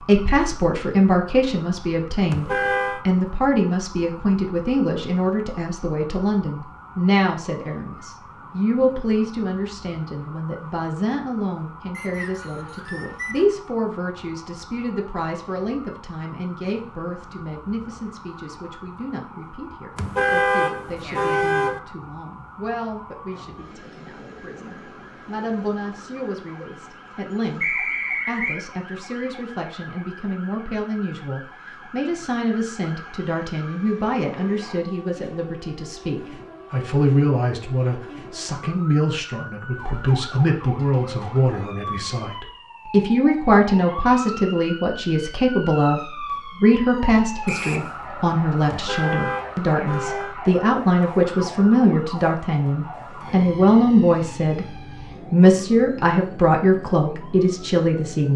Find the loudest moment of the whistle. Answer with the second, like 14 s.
28 s.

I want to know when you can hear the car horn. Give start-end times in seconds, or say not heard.
2.3-3.0, 19.9-21.8, 48.6-50.4.